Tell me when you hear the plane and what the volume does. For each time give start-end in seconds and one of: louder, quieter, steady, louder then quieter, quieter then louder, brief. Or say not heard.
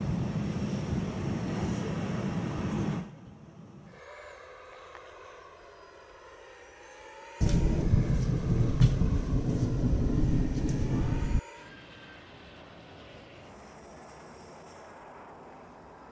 0.0-16.0 quieter.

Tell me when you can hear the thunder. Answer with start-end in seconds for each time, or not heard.
7.4-11.4.